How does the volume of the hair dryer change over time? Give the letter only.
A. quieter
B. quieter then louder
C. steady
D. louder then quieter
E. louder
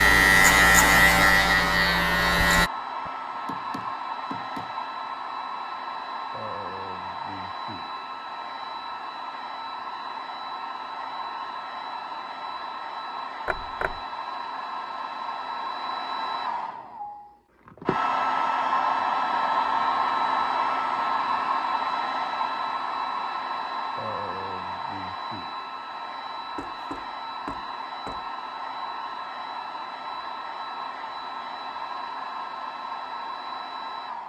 D.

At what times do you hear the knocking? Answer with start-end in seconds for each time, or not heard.
3.0-4.8, 13.4-14.0, 26.6-28.2.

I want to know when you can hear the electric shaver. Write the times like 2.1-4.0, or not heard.
0.0-2.7.